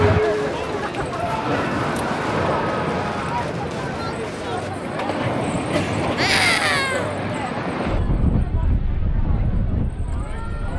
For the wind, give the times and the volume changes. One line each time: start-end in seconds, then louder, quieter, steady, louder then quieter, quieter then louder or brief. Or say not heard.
0.0-10.7 steady.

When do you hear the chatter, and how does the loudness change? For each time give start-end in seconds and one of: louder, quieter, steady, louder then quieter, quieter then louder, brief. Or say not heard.
0.0-10.7 quieter.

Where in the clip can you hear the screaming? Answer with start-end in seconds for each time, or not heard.
1.1-3.5, 6.2-7.1.